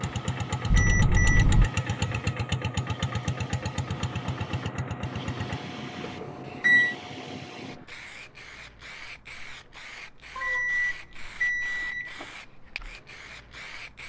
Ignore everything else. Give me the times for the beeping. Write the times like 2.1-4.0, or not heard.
0.7-1.7, 6.0-7.0, 10.3-12.2.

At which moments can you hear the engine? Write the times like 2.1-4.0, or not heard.
0.0-5.6.